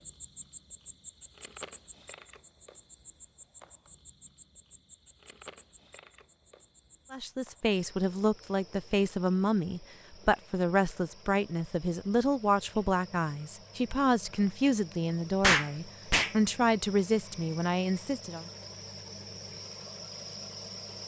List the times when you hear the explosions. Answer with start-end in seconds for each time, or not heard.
15.4-16.4.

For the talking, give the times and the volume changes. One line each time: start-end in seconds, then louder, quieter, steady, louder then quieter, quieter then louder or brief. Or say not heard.
7.1-18.4 steady.